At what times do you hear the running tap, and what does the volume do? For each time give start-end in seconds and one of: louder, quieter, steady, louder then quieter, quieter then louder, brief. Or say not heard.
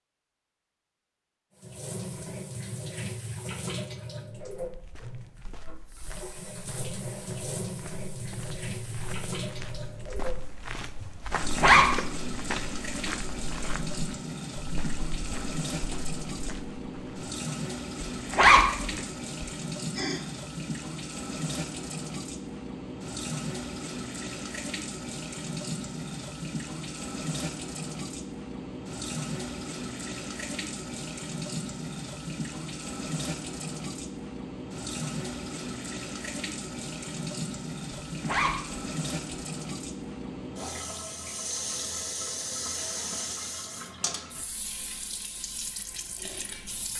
1.6-46.9 steady.